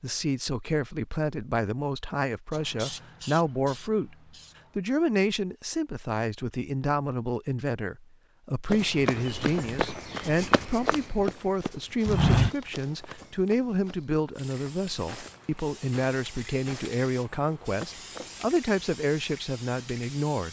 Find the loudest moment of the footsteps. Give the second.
12 s.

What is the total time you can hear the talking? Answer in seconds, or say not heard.
20 s.